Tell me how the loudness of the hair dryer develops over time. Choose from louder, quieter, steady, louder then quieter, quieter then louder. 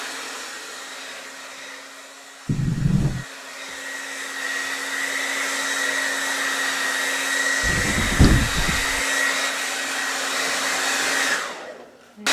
louder.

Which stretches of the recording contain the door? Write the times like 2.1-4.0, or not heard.
2.5-3.2, 7.6-9.0.